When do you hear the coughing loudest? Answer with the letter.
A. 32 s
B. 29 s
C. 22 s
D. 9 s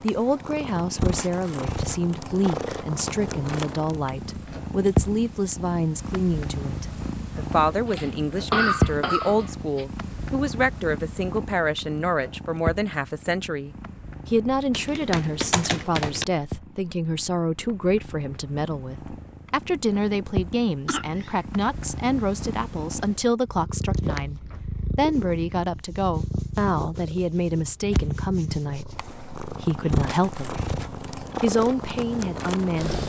D.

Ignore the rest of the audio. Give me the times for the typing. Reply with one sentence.
You can hear the typing from 14.7 to 16.2 s.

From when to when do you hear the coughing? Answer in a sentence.
The coughing can be heard from 7.8 to 9.8 s and from 20.9 to 21.4 s.